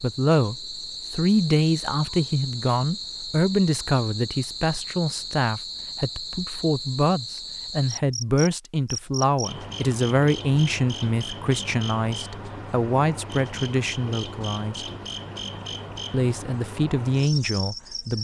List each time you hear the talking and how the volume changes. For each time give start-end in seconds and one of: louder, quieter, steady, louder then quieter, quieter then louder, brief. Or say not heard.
0.0-14.8 steady
16.1-18.2 brief.